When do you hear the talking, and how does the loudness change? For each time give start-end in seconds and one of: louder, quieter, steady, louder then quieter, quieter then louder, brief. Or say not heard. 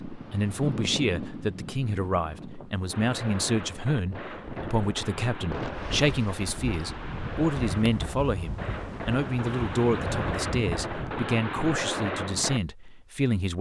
0.1-13.5 steady.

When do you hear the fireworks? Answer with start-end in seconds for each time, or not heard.
2.9-12.6.